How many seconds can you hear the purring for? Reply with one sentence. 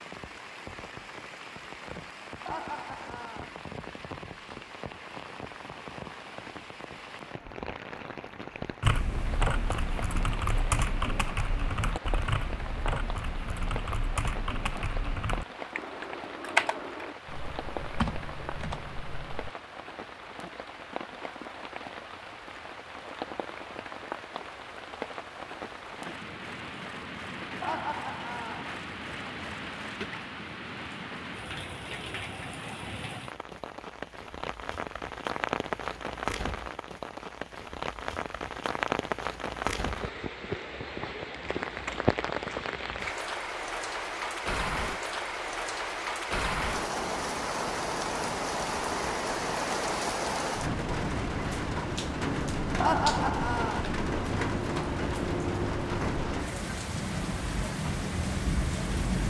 You can't hear the purring here.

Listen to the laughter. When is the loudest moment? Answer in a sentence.
The loudest moment of the laughter is at 53 seconds.